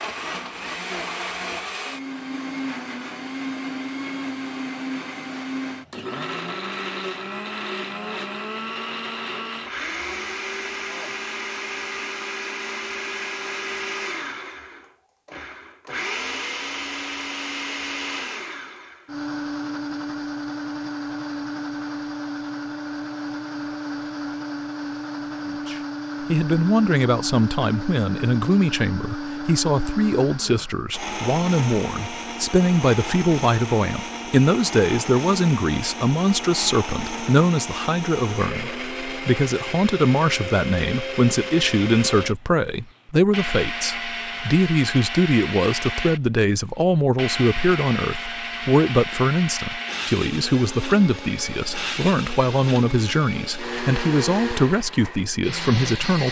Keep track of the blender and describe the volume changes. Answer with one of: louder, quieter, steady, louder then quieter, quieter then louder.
steady.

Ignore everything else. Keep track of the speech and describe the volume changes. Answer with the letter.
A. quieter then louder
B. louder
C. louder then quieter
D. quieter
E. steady
E.